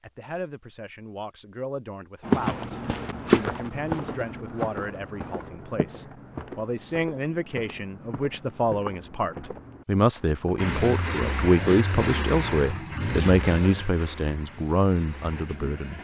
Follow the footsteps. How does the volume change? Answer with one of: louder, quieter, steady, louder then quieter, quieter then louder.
quieter.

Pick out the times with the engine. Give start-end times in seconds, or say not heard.
10.6-15.9.